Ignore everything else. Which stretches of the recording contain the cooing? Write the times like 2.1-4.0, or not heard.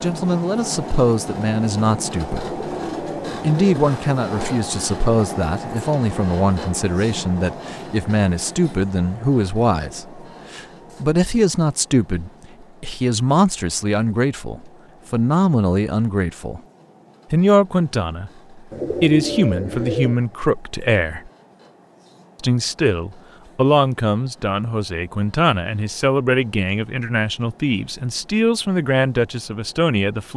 2.4-3.9, 18.7-20.1.